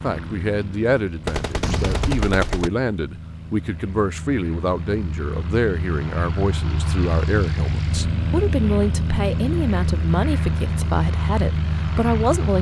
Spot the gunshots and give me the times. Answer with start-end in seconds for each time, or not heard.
1.2-2.7.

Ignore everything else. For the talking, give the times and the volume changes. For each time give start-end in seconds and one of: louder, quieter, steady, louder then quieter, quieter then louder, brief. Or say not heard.
0.0-12.5 steady.